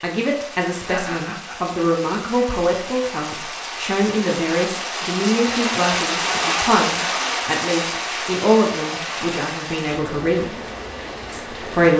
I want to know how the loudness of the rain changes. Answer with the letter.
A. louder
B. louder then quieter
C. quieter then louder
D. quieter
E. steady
B.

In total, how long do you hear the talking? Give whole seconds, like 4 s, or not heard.
11 s.